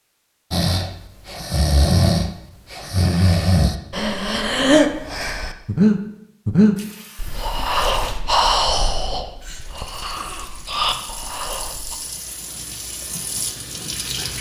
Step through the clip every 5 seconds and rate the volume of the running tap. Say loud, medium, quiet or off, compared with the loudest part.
off, medium, loud.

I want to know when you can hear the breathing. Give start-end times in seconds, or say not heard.
0.5-11.9.